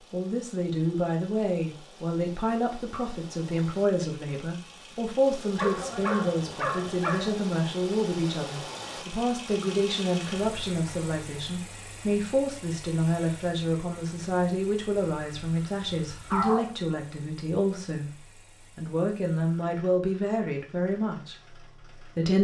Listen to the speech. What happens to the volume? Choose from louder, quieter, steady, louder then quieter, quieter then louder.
steady.